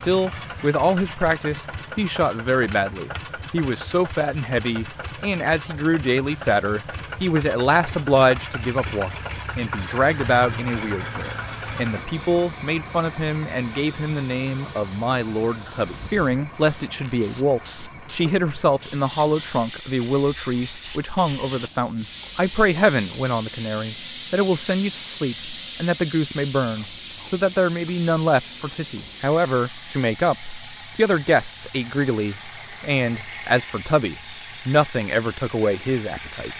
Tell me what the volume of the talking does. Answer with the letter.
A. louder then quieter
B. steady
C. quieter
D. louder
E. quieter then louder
B.